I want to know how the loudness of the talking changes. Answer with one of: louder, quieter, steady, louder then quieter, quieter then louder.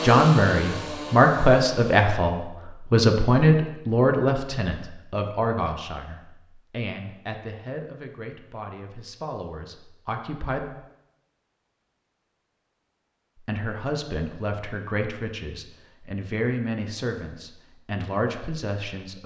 quieter then louder.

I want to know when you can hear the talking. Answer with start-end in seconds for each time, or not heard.
0.0-10.7, 13.3-19.2.